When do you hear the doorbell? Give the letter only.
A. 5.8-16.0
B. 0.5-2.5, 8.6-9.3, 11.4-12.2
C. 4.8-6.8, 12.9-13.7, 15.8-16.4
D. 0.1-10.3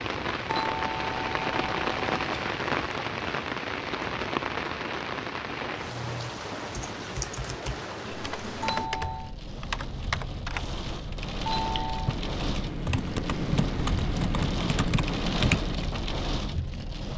B.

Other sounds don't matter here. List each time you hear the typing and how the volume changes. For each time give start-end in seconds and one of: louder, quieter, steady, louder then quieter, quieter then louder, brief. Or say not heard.
5.8-16.0 louder.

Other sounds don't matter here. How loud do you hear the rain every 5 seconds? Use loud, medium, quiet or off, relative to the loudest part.
loud, medium, medium, loud.